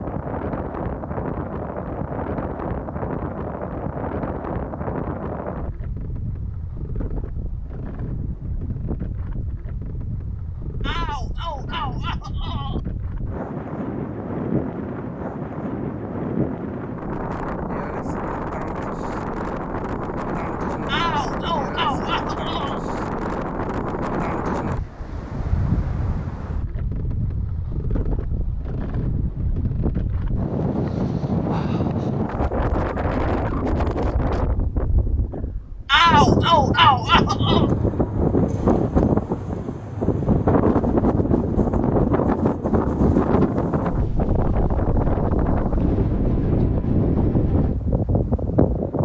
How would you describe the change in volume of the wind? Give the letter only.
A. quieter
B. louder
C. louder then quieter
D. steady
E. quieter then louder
B.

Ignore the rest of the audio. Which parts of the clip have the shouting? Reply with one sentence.
You can hear the shouting from 10.8 to 12.8 s, from 20.9 to 22.8 s and from 35.9 to 37.6 s.